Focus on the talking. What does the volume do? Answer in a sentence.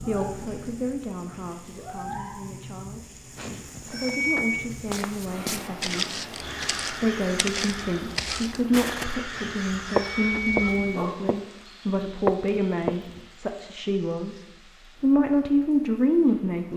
The volume of the talking goes up.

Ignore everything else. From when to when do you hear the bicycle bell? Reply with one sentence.
You can hear the bicycle bell from 3.4 to 4.7 s and from 9.3 to 11.0 s.